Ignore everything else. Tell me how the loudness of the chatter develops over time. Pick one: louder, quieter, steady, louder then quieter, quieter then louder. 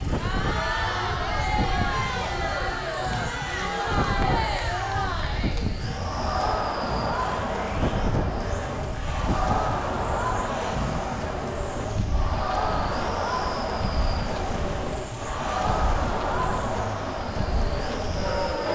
steady.